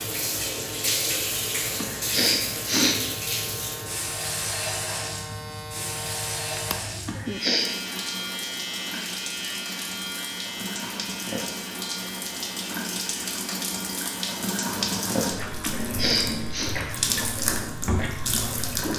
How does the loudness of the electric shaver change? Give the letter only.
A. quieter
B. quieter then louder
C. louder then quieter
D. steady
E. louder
C.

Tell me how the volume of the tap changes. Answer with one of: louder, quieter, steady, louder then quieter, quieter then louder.
quieter then louder.